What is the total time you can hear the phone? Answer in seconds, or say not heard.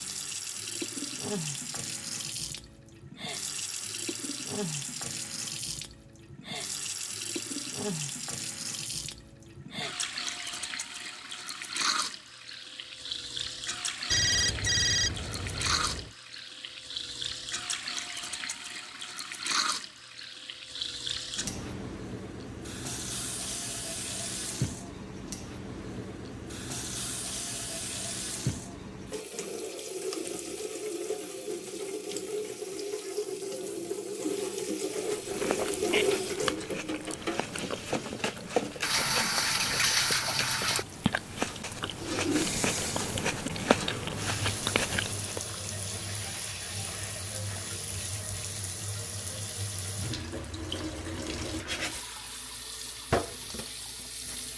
2 s.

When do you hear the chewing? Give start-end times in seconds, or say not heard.
35.0-45.4.